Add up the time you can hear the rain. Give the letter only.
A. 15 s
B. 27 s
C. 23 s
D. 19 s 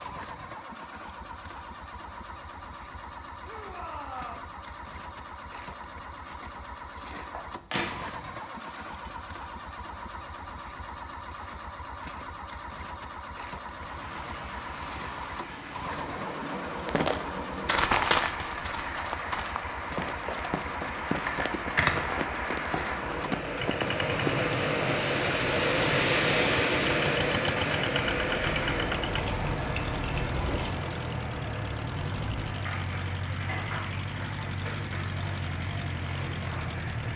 C.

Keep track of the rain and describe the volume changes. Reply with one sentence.
The volume of the rain goes up, then down.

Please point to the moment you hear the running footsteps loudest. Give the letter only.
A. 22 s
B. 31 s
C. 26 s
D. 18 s
D.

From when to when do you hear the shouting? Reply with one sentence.
You can hear the shouting from 3.4 to 4.5 s.